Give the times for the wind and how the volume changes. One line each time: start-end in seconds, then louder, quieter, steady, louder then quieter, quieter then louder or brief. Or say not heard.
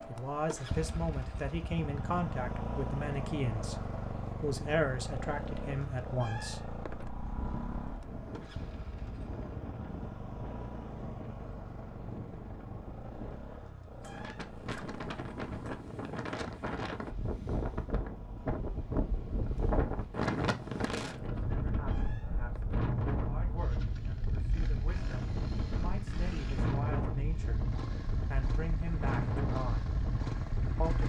7.1-31.0 louder.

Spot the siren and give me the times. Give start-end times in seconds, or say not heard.
not heard.